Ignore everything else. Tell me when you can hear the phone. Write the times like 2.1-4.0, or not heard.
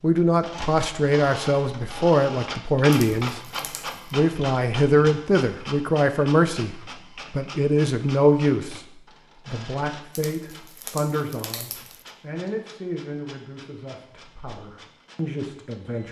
not heard.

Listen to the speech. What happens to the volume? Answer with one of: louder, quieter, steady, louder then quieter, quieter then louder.
quieter.